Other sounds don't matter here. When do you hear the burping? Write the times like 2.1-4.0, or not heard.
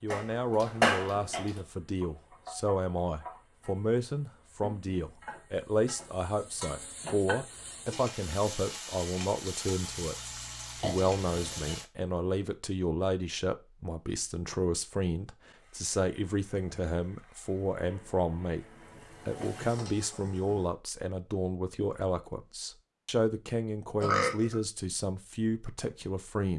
0.1-1.5, 10.0-11.8, 24.0-24.6.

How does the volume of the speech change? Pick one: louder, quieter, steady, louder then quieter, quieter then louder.
steady.